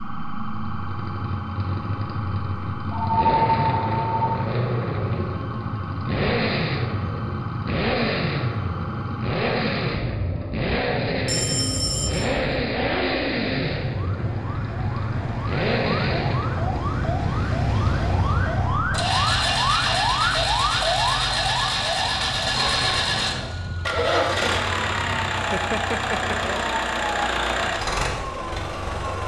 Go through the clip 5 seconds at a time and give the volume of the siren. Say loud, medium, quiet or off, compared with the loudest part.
medium, medium, medium, loud, loud, medium.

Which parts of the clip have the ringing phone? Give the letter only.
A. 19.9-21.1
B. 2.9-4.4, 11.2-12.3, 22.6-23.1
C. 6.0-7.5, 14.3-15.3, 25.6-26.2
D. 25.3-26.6
B.